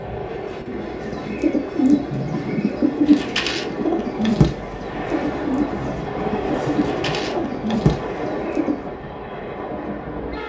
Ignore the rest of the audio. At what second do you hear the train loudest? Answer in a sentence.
The loudest moment of the train is at 7 seconds.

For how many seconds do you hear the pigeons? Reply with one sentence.
You can hear the pigeons for 8 seconds altogether.